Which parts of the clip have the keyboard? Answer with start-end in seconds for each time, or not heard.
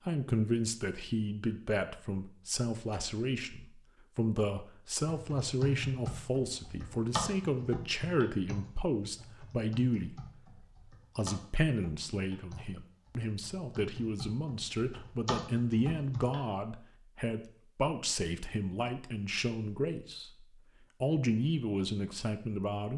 5.0-16.4.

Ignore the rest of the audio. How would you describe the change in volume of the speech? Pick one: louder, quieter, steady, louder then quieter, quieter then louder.
steady.